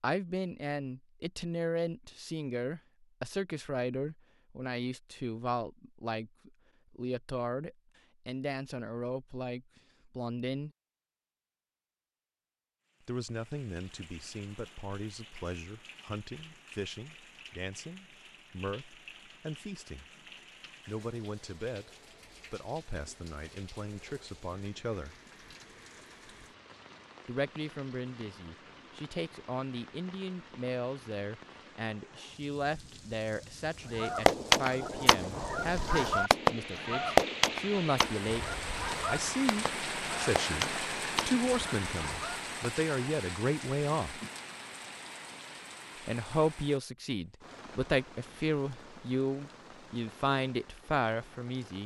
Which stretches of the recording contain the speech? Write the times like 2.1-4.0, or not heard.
0.0-10.7, 13.1-20.1, 20.9-21.9, 22.5-25.1, 27.2-44.2, 46.0-51.8.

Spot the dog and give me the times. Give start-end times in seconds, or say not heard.
not heard.